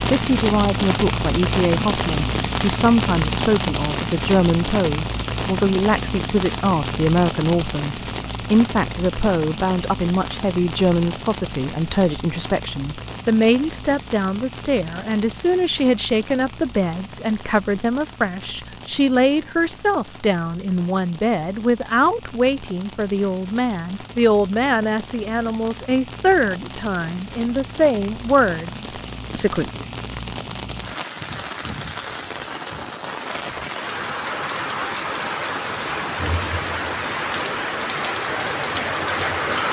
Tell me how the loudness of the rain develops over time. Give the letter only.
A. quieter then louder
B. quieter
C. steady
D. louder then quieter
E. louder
A.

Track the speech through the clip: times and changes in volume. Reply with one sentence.
You can hear the speech from 0.1 to 29.9 s, at a steady volume.